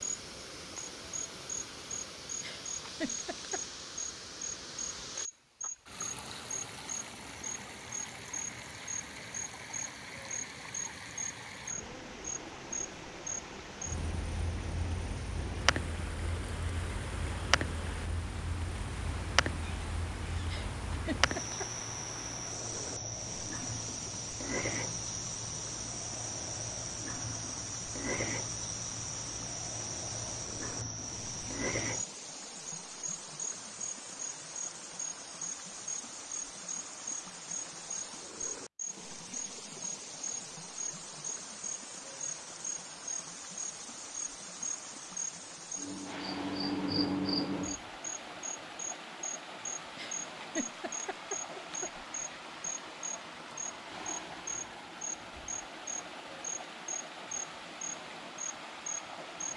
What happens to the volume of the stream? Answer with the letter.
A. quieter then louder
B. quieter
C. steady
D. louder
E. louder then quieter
C.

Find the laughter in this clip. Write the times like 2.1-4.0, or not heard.
2.4-3.6, 20.4-21.6, 50.0-51.8.